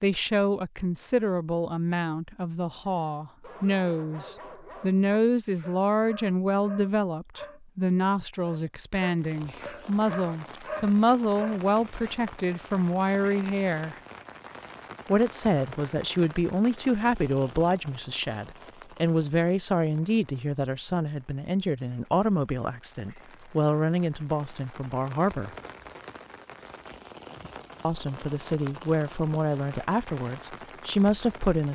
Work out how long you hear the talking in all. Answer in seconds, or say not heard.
28 s.